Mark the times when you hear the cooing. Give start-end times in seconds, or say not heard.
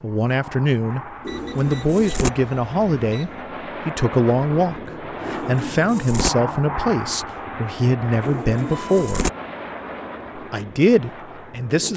1.2-2.3, 5.2-6.3, 8.2-9.3.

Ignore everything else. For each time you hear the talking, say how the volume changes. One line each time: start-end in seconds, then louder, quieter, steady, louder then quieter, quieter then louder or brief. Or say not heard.
0.0-9.3 steady
10.3-11.9 brief.